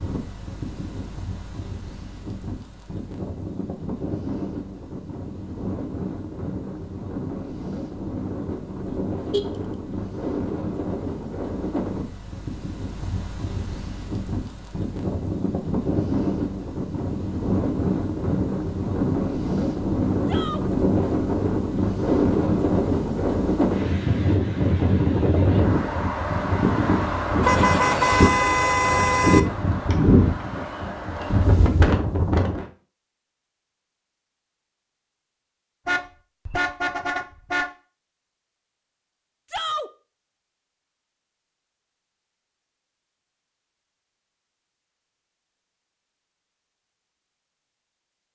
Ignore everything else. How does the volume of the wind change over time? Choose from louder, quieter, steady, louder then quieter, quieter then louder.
louder.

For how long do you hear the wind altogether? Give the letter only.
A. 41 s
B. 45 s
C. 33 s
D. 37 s
C.